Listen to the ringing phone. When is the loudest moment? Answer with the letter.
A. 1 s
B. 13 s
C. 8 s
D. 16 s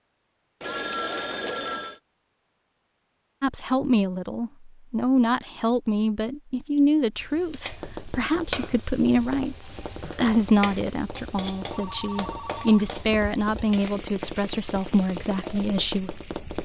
A.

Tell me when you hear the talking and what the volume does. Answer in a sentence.
You can hear the talking from 3.4 to 16.1 s, at a steady volume.